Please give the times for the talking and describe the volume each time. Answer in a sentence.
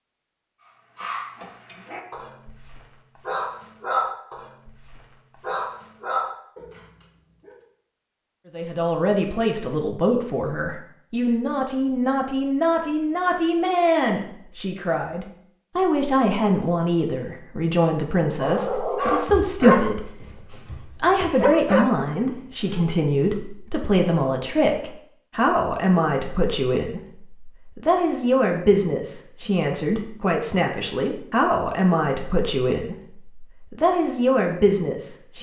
The talking can be heard from 8.5 to 35.3 s, at a steady volume.